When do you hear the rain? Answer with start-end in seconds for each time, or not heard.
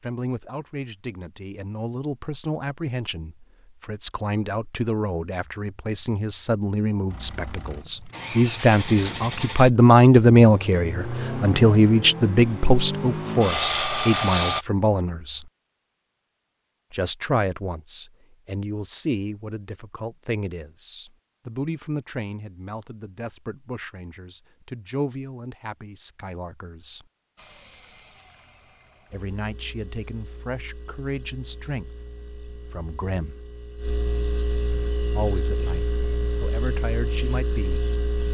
not heard.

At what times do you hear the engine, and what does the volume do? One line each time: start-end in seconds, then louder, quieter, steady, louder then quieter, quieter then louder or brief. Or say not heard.
7.1-14.7 louder
27.4-38.2 louder.